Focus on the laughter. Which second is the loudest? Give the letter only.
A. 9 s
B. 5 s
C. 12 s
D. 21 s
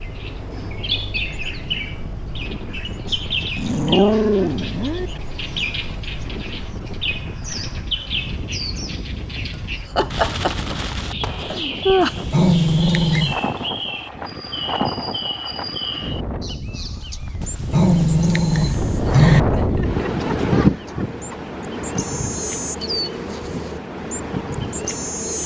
C.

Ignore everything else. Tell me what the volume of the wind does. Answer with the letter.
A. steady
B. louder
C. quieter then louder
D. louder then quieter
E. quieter
B.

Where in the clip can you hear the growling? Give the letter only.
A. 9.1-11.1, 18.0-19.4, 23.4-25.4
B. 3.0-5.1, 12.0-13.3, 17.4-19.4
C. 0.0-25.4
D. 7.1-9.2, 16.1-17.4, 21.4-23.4
B.